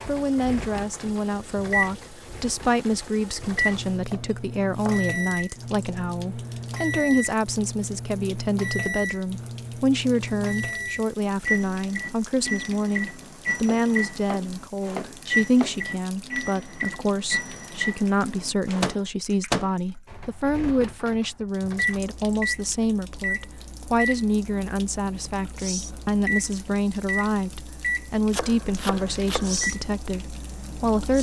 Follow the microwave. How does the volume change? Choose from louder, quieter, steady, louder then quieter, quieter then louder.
steady.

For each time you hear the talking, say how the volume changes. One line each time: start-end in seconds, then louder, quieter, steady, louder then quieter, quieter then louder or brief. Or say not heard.
0.1-31.1 steady.